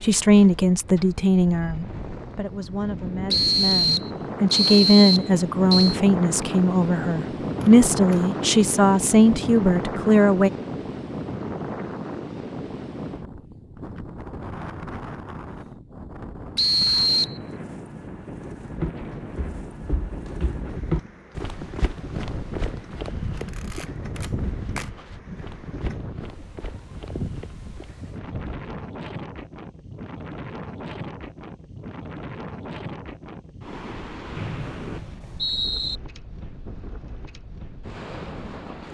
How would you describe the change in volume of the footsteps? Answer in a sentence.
The volume of the footsteps goes up, then down.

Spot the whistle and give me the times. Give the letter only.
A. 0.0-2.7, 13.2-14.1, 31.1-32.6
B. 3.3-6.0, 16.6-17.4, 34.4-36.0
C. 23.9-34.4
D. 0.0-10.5
B.